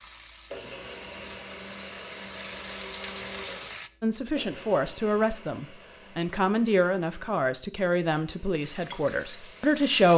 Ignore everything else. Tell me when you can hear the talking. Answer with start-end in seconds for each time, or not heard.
4.0-10.1.